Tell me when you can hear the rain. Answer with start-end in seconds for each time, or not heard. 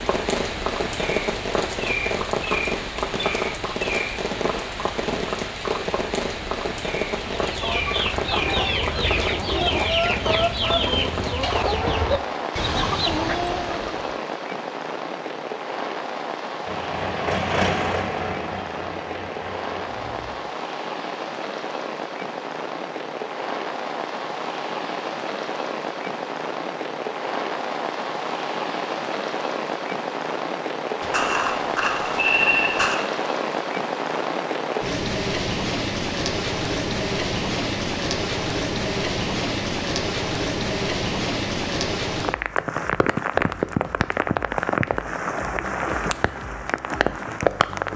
0.0-47.9.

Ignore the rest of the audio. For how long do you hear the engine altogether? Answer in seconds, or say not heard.
4 s.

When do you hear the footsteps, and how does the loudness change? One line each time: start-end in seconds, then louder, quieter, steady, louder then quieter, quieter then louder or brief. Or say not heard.
not heard.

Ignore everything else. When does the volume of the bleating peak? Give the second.
32 s.